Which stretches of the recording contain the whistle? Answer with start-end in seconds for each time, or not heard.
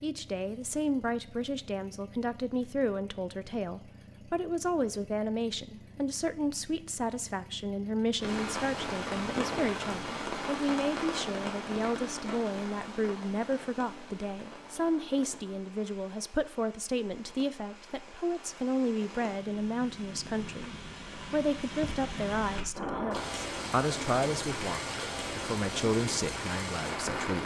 not heard.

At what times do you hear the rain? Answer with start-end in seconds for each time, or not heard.
8.2-27.4.